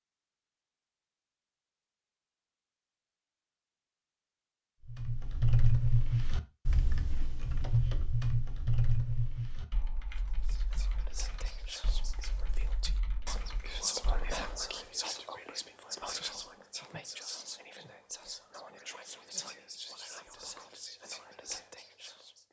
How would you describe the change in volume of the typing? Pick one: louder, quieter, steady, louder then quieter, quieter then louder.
quieter.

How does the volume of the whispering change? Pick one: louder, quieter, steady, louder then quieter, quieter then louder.
louder then quieter.